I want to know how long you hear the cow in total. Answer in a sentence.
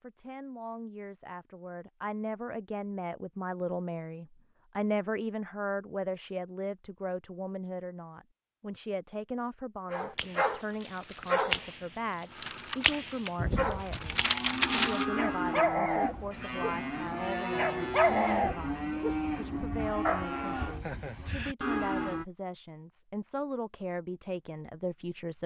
The cow can be heard for 9 seconds in total.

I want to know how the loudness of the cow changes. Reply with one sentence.
The loudness of the cow stays about the same.